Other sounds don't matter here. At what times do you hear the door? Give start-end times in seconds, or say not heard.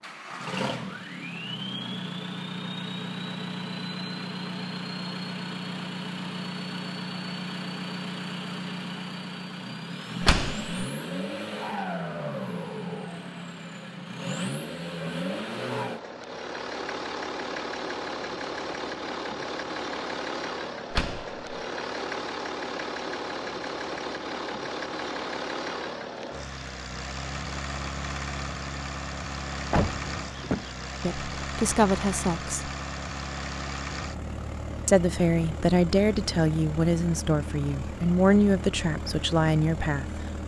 10.2-10.8, 20.9-21.4, 29.7-30.8.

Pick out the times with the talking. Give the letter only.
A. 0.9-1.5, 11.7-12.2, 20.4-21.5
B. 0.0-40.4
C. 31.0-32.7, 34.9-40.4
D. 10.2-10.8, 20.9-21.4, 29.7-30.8
C.